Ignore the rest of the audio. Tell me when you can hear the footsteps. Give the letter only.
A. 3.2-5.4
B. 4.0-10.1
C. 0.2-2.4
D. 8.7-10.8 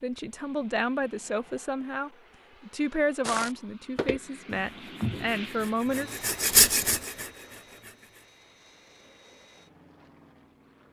A.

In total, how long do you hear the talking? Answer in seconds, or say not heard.
6 s.